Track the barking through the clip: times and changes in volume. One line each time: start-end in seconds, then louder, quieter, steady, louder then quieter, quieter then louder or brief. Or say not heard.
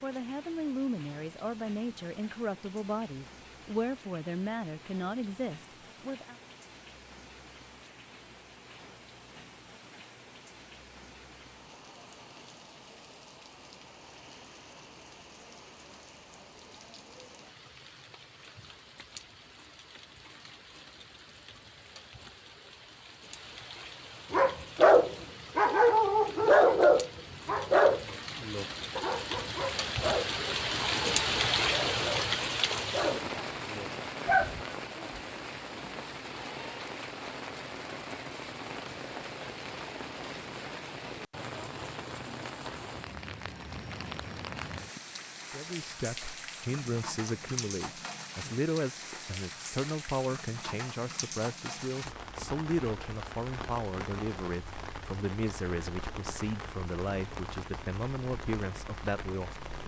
24.3-34.6 quieter.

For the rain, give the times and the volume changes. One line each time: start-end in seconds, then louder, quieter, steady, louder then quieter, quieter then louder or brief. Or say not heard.
0.0-59.8 louder then quieter.